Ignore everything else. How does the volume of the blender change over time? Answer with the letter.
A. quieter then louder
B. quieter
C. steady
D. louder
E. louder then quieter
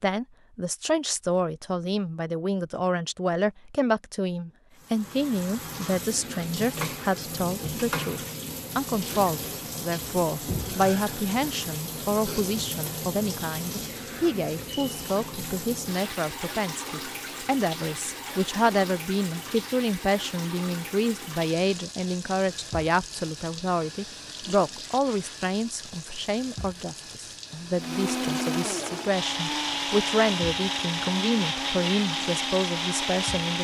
C.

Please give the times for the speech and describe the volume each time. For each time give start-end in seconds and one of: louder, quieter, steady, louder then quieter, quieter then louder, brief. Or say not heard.
0.0-33.5 steady.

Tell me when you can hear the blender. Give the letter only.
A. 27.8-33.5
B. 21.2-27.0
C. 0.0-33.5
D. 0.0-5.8
A.